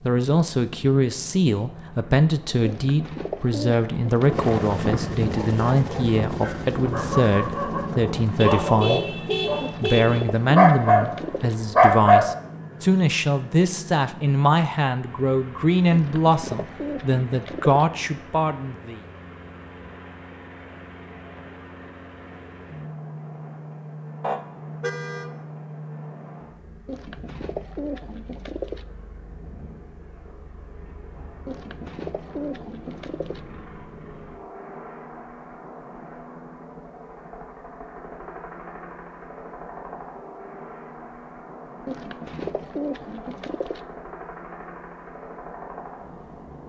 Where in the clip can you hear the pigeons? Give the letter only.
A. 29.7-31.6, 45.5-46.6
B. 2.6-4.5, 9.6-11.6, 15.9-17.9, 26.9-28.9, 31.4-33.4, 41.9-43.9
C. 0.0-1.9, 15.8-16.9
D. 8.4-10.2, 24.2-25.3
B.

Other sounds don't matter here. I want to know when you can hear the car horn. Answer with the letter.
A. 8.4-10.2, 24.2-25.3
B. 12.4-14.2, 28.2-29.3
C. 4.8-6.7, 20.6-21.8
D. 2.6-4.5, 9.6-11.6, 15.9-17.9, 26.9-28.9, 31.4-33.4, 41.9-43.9
A.